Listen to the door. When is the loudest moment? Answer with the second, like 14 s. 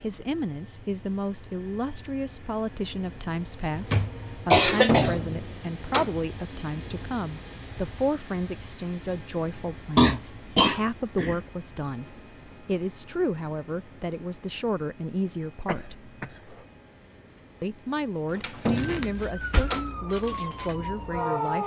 5 s.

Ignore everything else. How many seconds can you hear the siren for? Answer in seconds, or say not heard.
3 s.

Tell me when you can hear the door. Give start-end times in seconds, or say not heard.
4.5-6.2, 18.2-19.9.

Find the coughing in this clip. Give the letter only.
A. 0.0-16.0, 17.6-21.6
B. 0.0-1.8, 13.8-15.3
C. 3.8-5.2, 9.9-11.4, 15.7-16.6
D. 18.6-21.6
C.